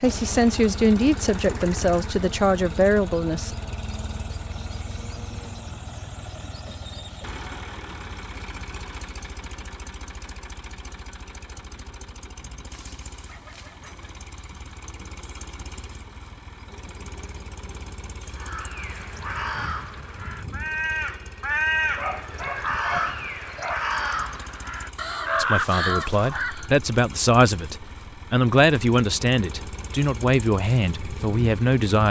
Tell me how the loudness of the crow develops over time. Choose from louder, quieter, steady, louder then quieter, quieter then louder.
louder.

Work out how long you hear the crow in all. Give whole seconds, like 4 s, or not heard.
8 s.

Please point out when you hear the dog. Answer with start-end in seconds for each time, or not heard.
12.7-14.1, 21.8-23.9.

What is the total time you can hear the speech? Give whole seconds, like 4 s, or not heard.
10 s.